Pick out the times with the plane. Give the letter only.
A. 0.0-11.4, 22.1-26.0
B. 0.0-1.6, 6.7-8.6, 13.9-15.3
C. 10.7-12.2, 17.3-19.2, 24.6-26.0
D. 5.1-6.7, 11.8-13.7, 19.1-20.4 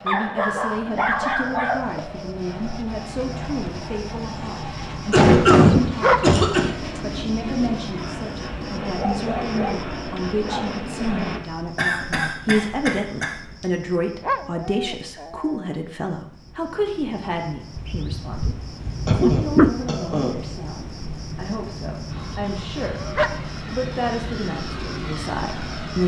A.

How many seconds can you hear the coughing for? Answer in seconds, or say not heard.
5 s.